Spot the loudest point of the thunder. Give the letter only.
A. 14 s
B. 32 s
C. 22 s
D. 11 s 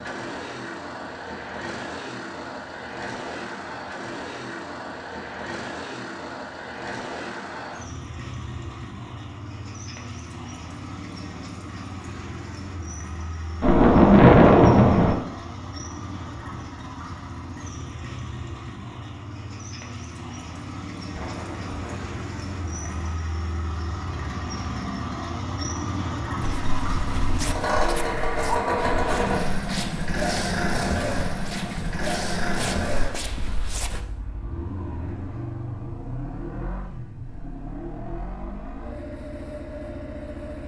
A.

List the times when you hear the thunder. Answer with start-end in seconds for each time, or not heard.
13.6-15.2, 21.1-23.1.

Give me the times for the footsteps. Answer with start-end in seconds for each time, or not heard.
26.4-34.0.